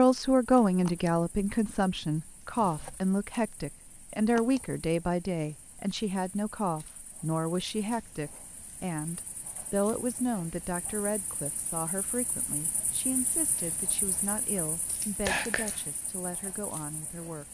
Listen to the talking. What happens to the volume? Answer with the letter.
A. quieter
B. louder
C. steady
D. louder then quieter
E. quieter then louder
A.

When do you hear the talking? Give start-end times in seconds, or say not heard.
0.0-17.5.